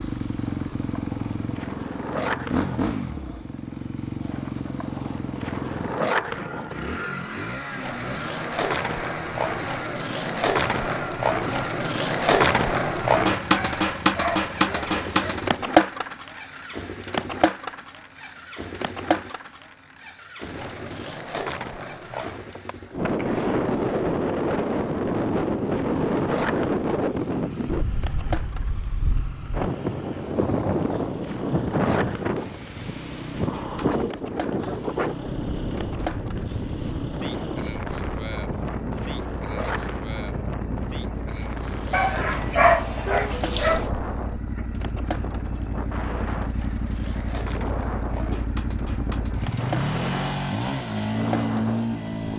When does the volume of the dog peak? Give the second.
43 s.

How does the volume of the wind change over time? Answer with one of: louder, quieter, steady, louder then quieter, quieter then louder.
quieter.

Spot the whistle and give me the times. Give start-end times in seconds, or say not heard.
not heard.